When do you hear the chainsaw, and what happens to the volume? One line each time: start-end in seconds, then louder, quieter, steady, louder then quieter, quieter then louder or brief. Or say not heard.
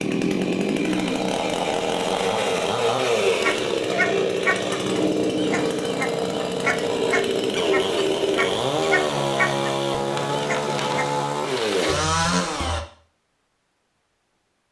0.0-12.8 steady.